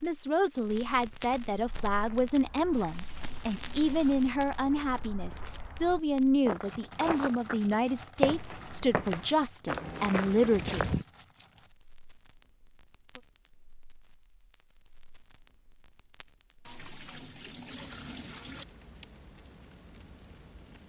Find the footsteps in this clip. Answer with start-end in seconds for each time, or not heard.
1.6-11.1.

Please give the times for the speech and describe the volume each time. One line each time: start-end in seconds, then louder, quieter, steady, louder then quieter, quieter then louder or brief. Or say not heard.
0.0-10.9 steady.